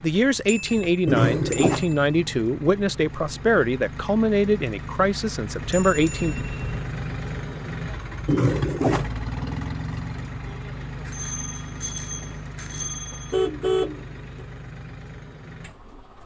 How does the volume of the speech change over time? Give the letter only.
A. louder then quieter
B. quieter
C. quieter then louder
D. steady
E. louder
D.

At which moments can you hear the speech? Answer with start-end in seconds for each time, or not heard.
0.0-6.3.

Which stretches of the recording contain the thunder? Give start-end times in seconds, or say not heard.
not heard.